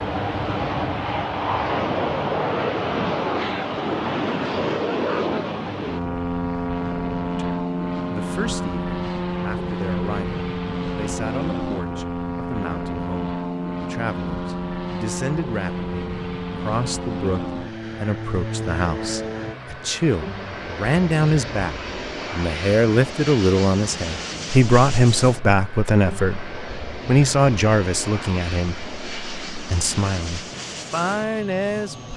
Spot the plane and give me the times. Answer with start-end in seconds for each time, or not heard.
0.0-32.1.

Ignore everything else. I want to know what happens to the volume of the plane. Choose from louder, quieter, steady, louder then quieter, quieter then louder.
quieter.